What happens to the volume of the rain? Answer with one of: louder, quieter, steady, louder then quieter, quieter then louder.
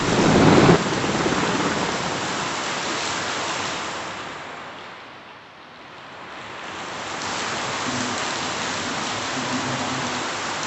quieter then louder.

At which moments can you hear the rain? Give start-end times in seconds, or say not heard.
0.0-10.6.